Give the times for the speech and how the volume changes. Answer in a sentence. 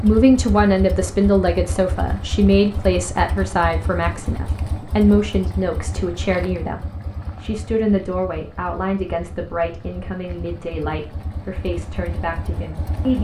The speech can be heard from 0.0 to 13.1 s, getting quieter.